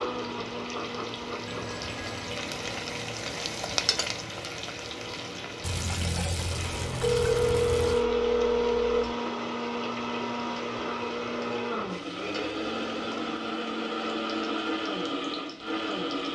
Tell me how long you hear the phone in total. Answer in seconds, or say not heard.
4 s.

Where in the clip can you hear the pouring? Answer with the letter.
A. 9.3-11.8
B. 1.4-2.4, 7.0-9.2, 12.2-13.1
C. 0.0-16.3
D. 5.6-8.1
D.